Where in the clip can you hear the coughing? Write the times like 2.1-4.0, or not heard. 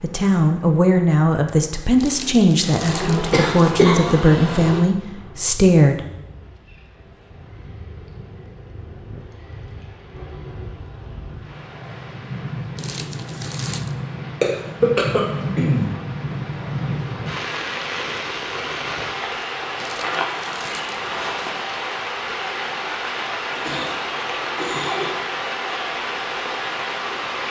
2.8-4.8, 14.4-15.8, 23.4-25.1.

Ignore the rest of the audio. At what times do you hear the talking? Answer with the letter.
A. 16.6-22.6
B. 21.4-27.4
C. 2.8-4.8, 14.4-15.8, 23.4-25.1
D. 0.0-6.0
D.